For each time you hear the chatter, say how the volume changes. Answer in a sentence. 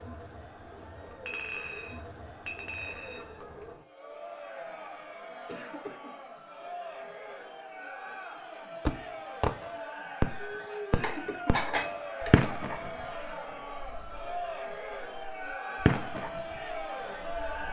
You can hear the chatter from 0.0 to 17.6 s, getting louder.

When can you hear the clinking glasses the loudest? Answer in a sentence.
The volume of the clinking glasses peaks at 12 seconds.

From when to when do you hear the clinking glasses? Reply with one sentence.
The clinking glasses can be heard from 1.2 to 3.2 s and from 11.0 to 12.0 s.